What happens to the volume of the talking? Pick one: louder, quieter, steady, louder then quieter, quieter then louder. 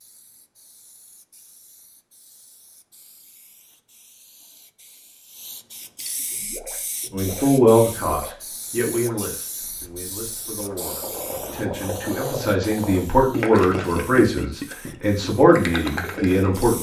quieter then louder.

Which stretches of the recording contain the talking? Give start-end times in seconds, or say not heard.
7.1-16.7.